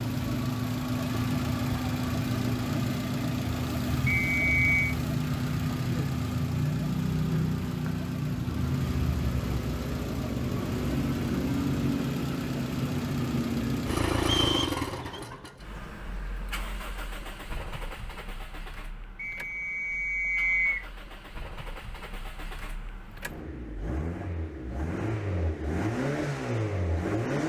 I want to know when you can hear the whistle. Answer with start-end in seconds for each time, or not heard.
4.0-5.0, 14.2-15.2, 19.1-20.9.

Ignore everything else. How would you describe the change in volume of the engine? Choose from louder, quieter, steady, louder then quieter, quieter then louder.
quieter then louder.